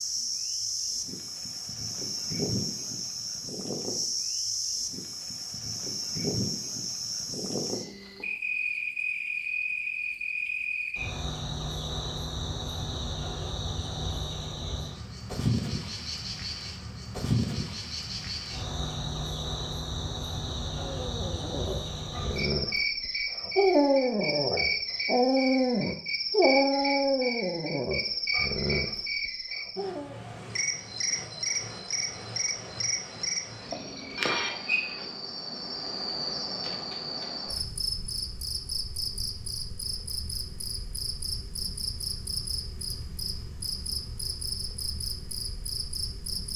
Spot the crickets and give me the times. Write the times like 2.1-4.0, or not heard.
0.0-46.5.